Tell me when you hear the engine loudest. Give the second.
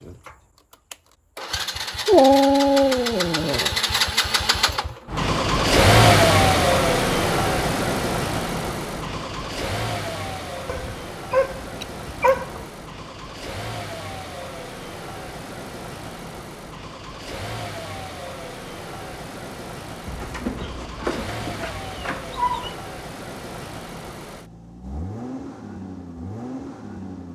6 s.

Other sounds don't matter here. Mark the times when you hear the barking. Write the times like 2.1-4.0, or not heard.
2.0-3.7, 10.7-12.7, 20.1-22.8.